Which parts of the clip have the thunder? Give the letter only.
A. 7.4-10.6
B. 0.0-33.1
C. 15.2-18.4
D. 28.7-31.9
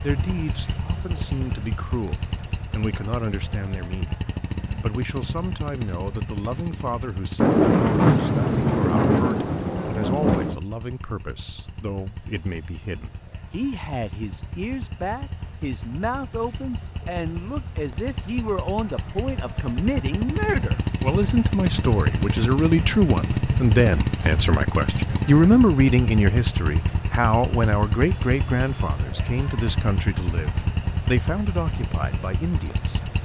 A.